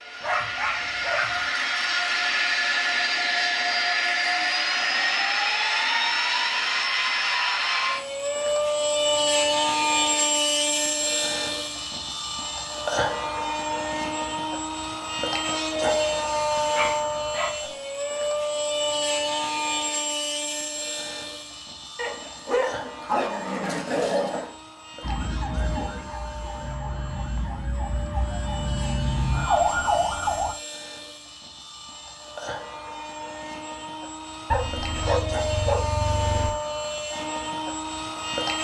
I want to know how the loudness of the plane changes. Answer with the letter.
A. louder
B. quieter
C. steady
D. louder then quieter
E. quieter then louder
E.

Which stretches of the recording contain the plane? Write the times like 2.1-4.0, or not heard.
0.0-38.5.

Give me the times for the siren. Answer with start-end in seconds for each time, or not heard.
25.0-30.6.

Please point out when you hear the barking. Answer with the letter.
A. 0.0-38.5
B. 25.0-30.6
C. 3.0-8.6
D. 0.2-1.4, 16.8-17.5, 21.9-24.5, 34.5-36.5
D.